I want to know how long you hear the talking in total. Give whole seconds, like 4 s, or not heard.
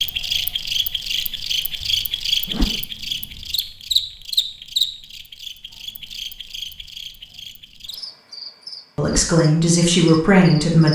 2 s.